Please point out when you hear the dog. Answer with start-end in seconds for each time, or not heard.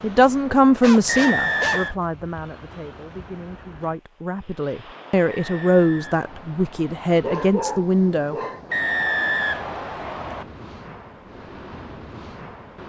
0.8-1.9, 7.2-8.6.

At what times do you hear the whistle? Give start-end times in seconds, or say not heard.
1.1-1.9, 5.3-6.9, 8.7-10.4.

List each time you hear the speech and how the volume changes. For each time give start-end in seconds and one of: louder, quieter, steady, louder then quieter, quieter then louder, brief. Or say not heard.
0.0-8.3 quieter then louder.